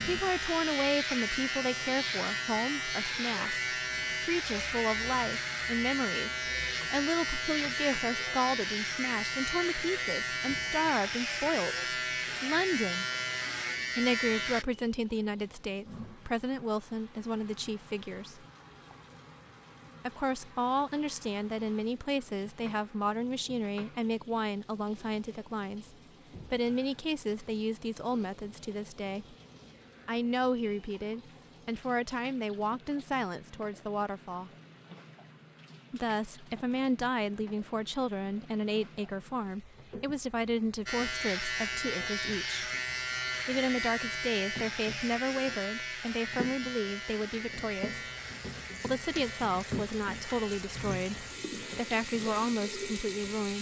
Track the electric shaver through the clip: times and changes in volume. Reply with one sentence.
You can hear the electric shaver from 0.0 to 14.7 s, at a steady volume; and from 40.9 to 53.5 s, getting quieter.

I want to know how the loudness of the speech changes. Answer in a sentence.
The volume of the speech stays about the same.